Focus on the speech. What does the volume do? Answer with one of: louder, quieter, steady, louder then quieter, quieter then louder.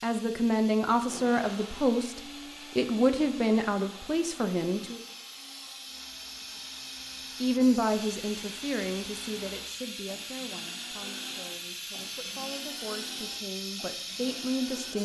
quieter then louder.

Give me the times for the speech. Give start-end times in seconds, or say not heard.
0.0-5.0, 7.4-14.9.